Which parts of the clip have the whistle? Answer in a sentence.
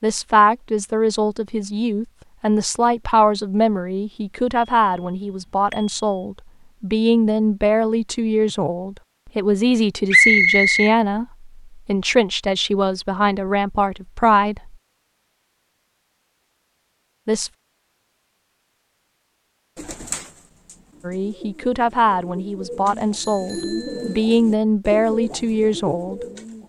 The whistle can be heard from 10.1 to 10.9 s.